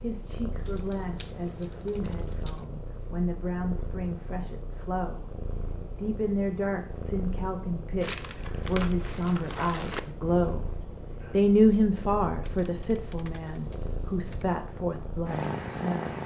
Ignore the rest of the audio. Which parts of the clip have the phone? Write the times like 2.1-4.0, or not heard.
not heard.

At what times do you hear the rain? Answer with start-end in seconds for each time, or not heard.
not heard.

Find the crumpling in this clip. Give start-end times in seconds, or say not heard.
8.0-10.0.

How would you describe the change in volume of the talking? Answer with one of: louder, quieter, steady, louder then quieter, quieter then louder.
louder then quieter.